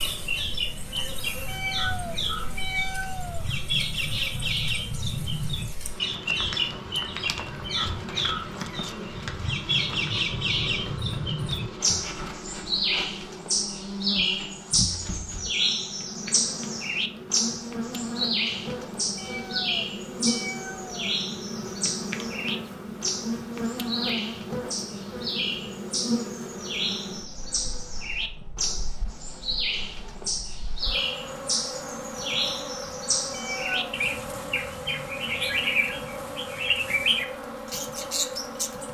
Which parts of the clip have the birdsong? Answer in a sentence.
You can hear the birdsong from 0.0 to 38.8 s.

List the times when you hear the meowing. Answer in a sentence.
The meowing can be heard from 1.4 to 3.5 s, from 19.1 to 20.9 s and from 33.3 to 33.9 s.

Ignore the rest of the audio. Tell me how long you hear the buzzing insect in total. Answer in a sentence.
The buzzing insect can be heard for 39 seconds in total.